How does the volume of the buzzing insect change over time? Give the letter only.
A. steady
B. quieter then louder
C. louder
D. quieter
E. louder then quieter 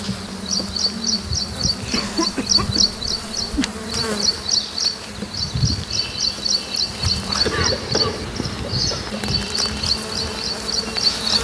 A.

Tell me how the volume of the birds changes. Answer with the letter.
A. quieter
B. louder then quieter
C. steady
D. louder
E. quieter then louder
C.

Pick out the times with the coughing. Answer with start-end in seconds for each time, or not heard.
1.9-3.7, 7.4-9.0.